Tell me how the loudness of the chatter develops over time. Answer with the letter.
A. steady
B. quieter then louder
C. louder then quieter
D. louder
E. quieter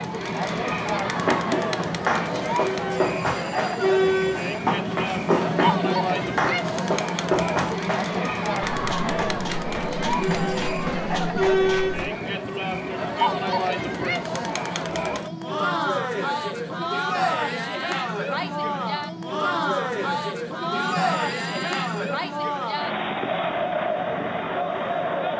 A.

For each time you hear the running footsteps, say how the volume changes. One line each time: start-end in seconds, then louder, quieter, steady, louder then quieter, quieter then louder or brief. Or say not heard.
1.1-12.1 quieter.